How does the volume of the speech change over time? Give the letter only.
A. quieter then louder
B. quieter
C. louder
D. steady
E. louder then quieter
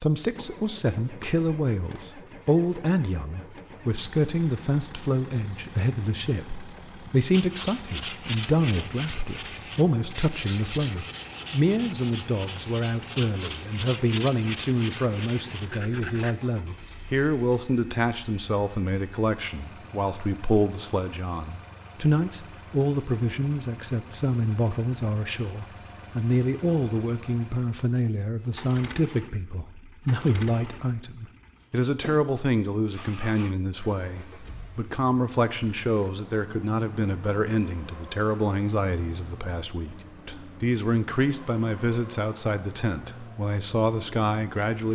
D.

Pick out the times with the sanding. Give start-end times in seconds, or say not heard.
7.3-16.4.